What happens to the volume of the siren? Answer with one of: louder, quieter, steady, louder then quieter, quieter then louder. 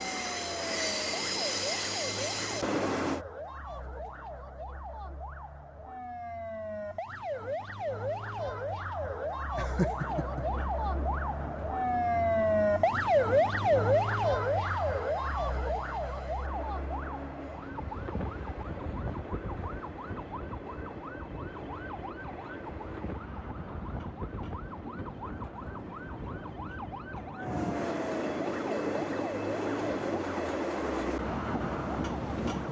louder then quieter.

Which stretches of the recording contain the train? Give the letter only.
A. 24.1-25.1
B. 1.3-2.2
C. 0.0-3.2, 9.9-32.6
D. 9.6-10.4
C.